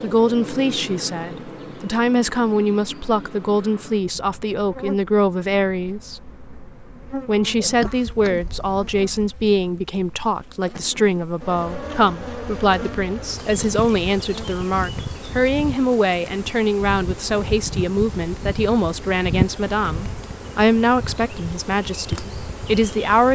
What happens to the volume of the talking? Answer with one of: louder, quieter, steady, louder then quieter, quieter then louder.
steady.